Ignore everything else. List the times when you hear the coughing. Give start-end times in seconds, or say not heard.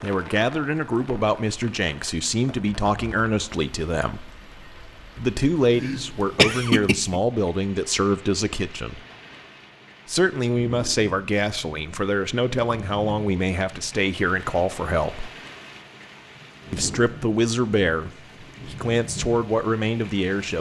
5.8-7.2.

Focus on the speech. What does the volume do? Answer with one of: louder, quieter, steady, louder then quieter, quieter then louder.
steady.